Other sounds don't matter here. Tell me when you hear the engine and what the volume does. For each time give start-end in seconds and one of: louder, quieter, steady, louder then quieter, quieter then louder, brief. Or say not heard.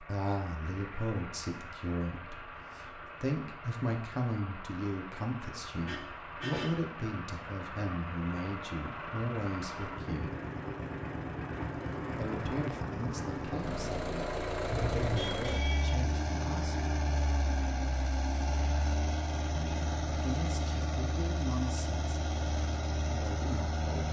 0.0-24.0 louder.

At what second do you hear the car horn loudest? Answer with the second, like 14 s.
15 s.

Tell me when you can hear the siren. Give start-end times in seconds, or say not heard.
not heard.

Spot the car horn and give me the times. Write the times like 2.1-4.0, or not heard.
5.8-6.8, 14.7-15.9.